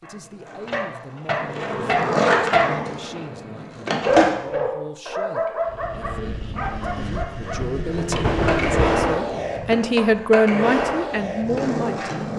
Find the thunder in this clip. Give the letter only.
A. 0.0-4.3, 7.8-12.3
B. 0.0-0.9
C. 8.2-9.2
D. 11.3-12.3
C.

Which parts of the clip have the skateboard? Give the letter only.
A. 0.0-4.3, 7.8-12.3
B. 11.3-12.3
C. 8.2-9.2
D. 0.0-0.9
A.